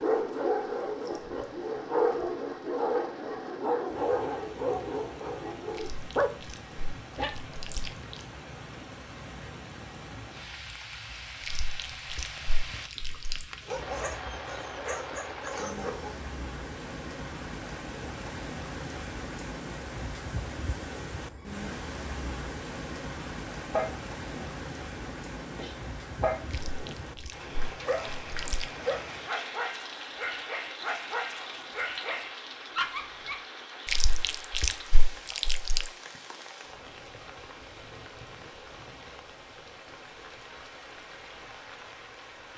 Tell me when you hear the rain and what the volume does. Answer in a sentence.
You can hear the rain from 0.0 to 42.5 s, getting louder then quieter.